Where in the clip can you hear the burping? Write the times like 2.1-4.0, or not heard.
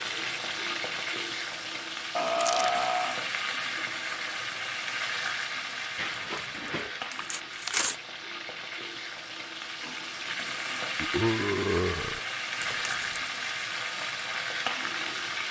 2.1-3.1, 6.0-7.0, 11.0-12.2.